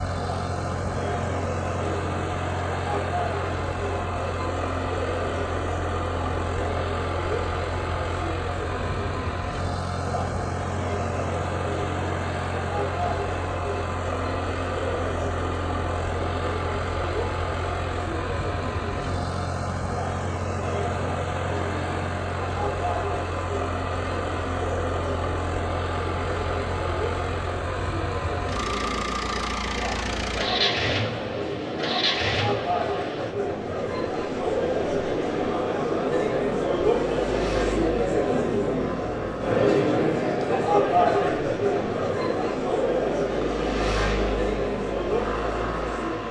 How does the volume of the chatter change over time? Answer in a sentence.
The loudness of the chatter goes up.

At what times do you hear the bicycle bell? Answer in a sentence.
The bicycle bell can't be heard in this clip.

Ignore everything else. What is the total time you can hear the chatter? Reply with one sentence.
You can hear the chatter for 46 seconds altogether.